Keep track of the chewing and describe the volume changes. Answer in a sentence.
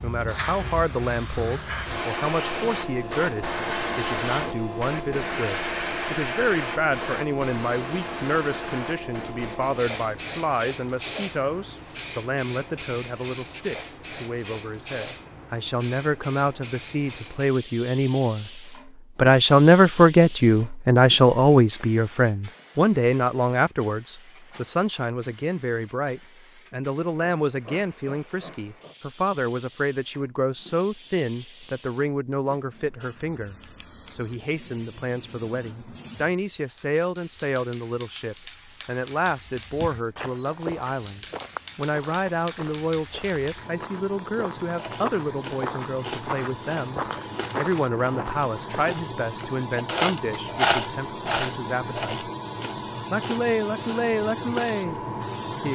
The volume of the chewing goes up, then down.